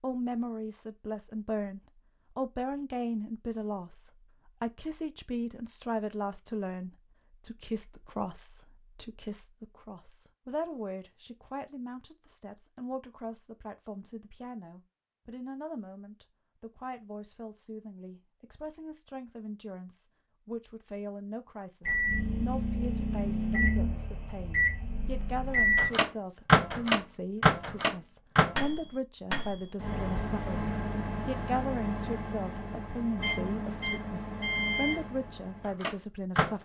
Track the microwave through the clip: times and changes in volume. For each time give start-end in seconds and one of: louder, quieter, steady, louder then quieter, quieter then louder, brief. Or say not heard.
21.8-36.5 louder then quieter.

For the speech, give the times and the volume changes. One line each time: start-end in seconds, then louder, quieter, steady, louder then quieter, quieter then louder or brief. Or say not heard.
0.0-36.5 quieter then louder.